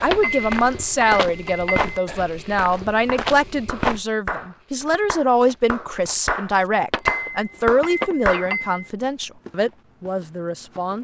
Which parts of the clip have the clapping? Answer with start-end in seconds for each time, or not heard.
2.7-8.6.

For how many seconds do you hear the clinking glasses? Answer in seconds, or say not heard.
4 s.